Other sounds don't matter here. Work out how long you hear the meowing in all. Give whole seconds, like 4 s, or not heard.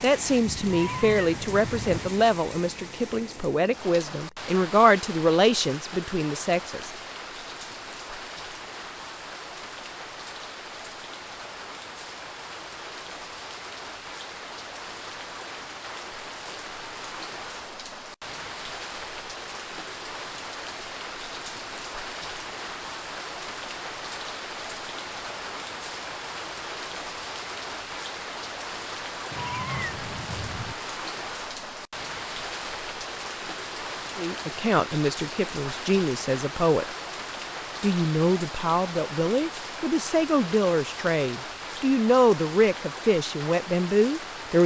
3 s.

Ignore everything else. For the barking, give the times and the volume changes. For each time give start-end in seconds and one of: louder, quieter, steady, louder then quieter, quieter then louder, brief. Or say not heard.
not heard.